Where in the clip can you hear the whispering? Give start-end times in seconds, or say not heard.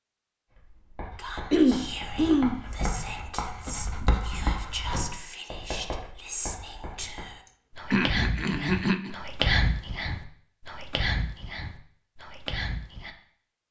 1.1-13.2.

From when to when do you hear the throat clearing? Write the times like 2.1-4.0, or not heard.
1.5-2.6, 7.9-9.2.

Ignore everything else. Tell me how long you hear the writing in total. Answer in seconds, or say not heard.
7 s.